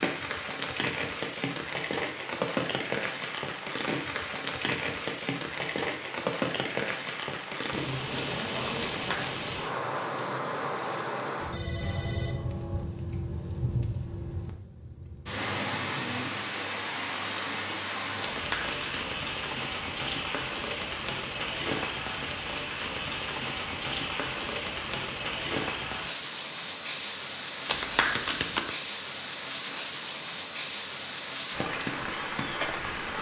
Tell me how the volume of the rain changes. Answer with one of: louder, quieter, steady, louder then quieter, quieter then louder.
steady.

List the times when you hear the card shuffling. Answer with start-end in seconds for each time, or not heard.
8.8-9.3, 18.3-19.1, 27.6-28.7.